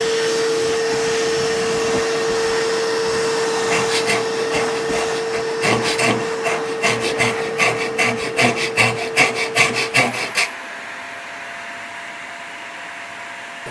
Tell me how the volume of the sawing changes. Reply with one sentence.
The loudness of the sawing goes up.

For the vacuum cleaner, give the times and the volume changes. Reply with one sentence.
The vacuum cleaner can be heard from 0.0 to 13.6 s, getting quieter.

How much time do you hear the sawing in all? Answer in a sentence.
You can hear the sawing for 7 seconds altogether.